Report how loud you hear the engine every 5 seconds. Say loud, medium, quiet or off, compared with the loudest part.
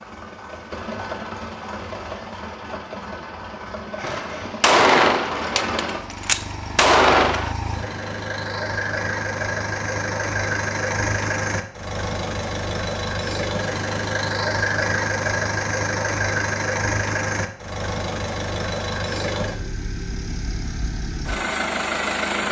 medium, loud, loud, loud, loud.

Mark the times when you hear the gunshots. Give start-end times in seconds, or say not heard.
4.0-7.5.